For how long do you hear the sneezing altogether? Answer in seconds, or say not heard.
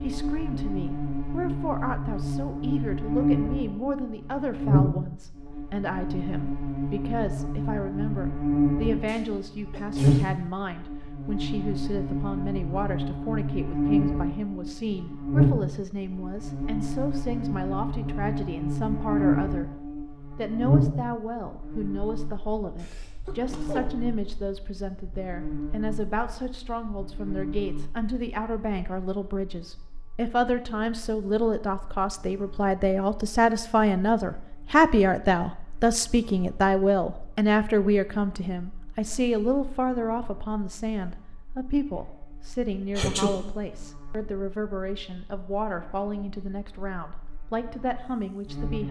3 s.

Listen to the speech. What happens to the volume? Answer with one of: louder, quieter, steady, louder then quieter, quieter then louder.
louder then quieter.